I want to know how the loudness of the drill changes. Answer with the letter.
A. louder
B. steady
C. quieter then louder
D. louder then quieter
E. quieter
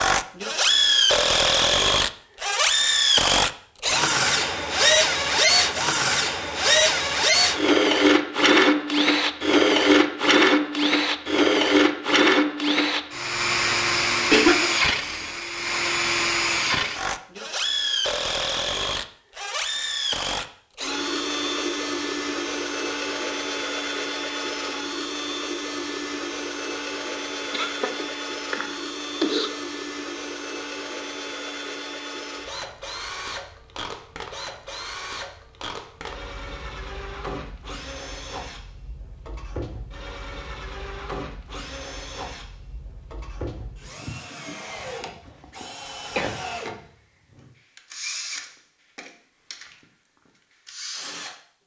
E.